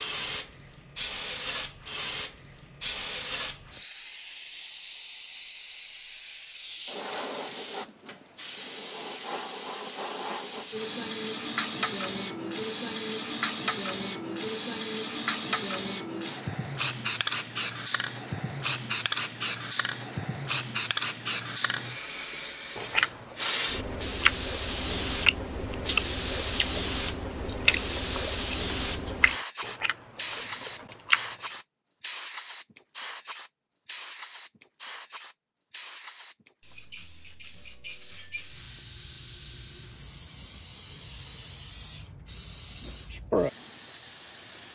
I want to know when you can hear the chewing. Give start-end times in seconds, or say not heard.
22.8-31.2.